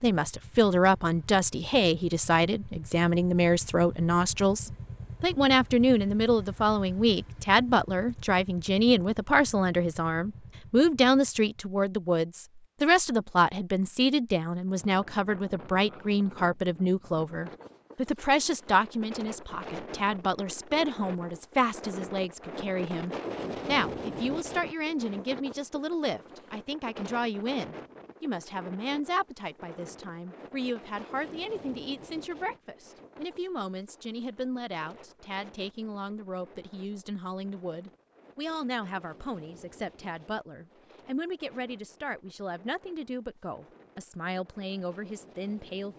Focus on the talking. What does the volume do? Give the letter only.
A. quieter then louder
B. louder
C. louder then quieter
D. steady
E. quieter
E.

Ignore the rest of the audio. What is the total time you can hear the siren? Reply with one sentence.
You can't hear the siren here.